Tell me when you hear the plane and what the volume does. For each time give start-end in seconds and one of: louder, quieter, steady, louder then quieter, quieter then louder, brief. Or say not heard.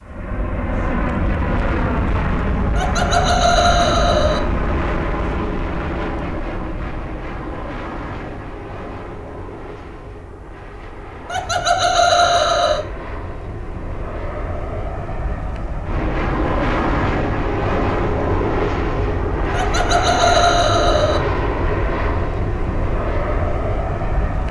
0.0-24.4 quieter then louder.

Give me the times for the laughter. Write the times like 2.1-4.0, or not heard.
2.8-4.4, 11.2-12.8, 19.5-21.2.